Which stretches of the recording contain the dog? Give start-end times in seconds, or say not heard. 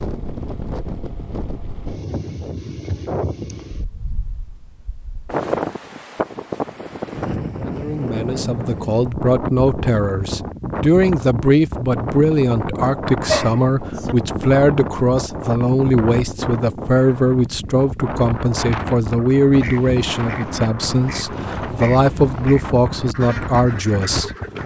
13.2-14.2.